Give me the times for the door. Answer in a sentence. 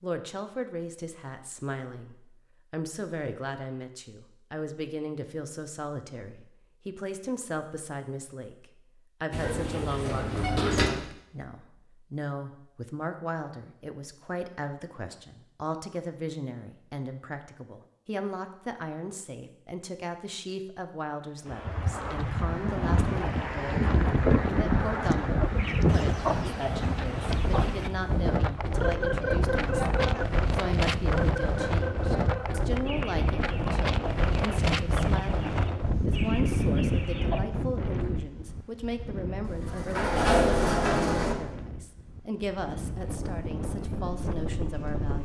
The door can be heard from 9.3 to 10.9 s and from 39.4 to 41.4 s.